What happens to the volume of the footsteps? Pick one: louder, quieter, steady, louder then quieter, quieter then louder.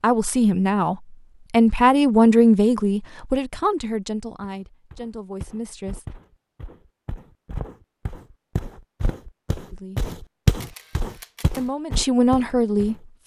louder then quieter.